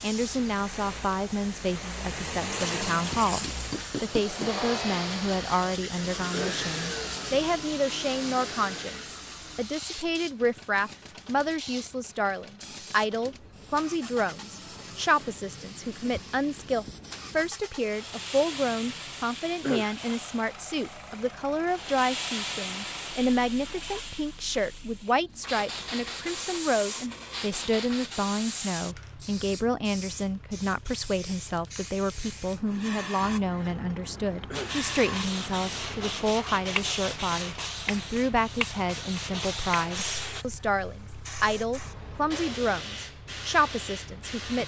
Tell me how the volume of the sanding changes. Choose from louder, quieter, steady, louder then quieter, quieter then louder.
quieter then louder.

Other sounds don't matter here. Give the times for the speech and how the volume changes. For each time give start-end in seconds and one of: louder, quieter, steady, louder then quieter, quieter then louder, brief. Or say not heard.
0.0-44.6 steady.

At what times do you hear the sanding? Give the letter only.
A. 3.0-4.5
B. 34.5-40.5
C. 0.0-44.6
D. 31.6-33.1
B.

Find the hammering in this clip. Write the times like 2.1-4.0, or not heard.
3.0-4.5.